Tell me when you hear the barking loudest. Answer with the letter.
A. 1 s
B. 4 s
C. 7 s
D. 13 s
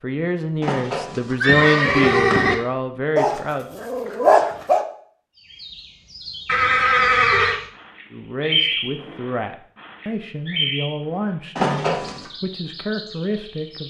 B.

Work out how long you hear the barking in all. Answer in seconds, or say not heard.
2 s.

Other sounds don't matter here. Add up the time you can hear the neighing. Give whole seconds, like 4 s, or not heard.
4 s.